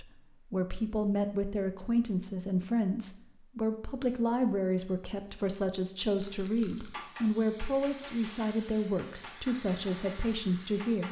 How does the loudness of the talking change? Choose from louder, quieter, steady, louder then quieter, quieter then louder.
steady.